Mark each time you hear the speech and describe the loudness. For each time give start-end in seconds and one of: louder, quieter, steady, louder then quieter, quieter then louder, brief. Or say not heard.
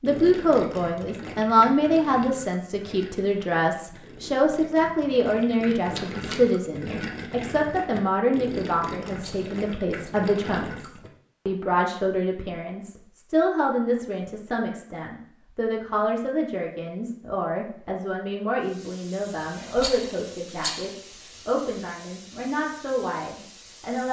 0.0-24.0 quieter.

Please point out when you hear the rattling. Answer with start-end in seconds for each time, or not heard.
5.7-6.4, 9.2-10.1, 19.8-20.9.